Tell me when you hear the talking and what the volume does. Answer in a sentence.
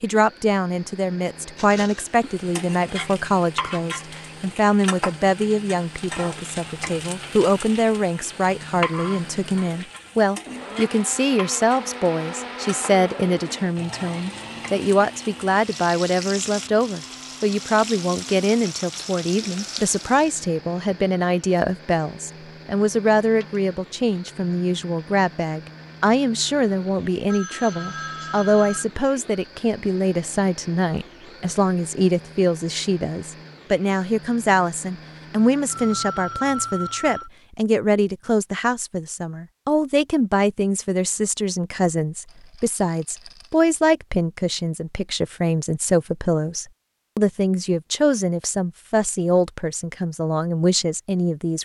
You can hear the talking from 0.0 to 51.6 s, at a steady volume.